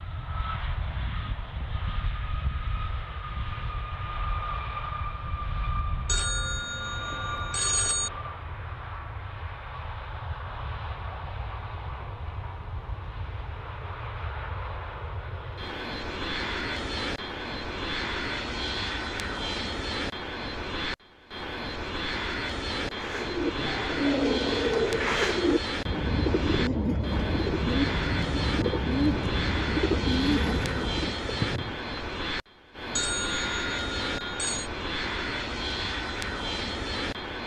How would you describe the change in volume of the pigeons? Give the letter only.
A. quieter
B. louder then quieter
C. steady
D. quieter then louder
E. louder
C.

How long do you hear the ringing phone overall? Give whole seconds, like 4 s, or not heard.
4 s.